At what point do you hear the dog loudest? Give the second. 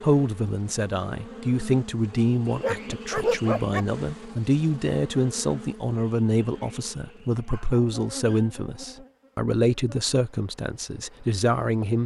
3 s.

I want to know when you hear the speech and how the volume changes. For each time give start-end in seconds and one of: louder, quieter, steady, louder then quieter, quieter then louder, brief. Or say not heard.
0.0-12.0 steady.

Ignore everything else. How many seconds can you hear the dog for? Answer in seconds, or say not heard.
3 s.